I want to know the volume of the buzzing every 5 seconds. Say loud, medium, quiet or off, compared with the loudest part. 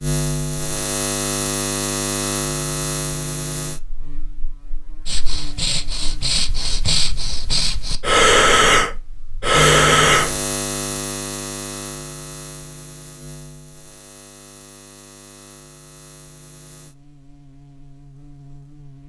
loud, loud, medium, quiet.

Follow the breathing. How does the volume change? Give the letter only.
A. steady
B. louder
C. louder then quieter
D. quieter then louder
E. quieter
B.